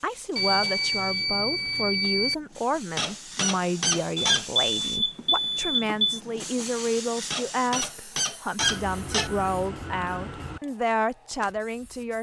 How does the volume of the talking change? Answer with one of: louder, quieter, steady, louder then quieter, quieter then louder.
steady.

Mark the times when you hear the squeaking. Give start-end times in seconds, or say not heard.
3.0-4.5, 7.3-9.3.